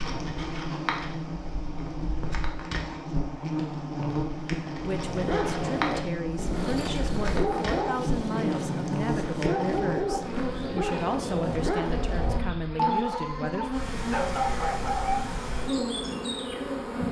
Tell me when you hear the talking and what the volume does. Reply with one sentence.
The talking can be heard from 4.8 to 13.7 s, at a steady volume.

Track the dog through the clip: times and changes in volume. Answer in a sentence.
The dog can be heard from 4.9 to 15.5 s, at a steady volume.